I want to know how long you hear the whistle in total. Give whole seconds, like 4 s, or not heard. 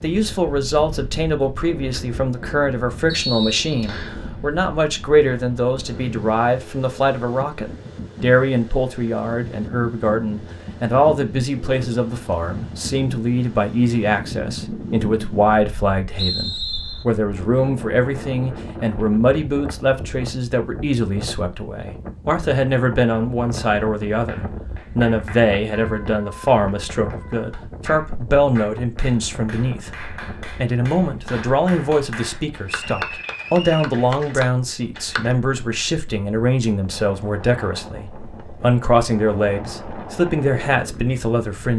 3 s.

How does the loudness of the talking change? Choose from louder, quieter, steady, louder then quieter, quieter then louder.
steady.